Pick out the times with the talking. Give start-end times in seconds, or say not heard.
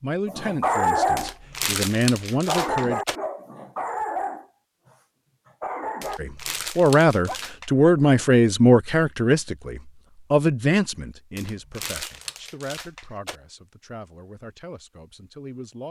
0.0-3.0, 6.2-15.8.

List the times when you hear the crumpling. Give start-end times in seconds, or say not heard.
1.1-3.2, 6.0-7.7, 11.3-13.4.